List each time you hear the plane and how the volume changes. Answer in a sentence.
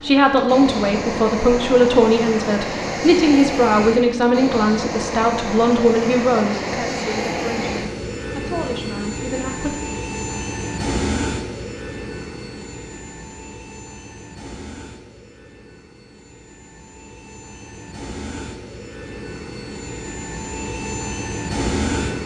The plane can be heard from 0.0 to 22.2 s, getting quieter then louder.